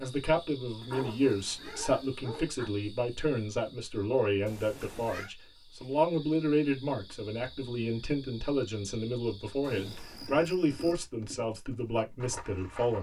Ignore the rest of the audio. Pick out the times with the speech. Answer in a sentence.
The speech can be heard from 0.0 to 12.9 s.